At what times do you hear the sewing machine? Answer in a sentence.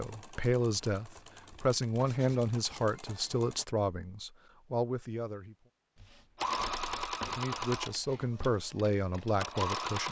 The sewing machine can be heard from 0.0 to 3.6 s and from 6.3 to 10.0 s.